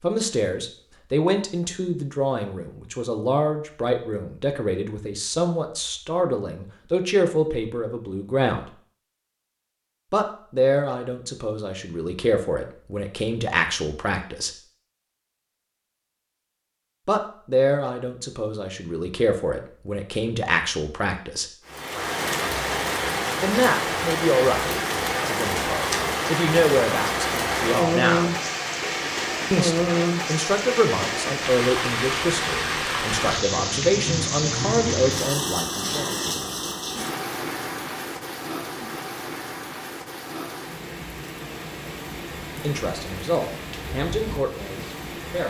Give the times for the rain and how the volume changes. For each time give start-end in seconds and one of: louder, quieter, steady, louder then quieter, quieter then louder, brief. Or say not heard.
21.6-45.4 quieter.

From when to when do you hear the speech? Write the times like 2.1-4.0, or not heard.
0.0-8.7, 10.1-14.5, 17.1-21.5, 23.4-28.4, 29.5-36.1, 42.6-45.4.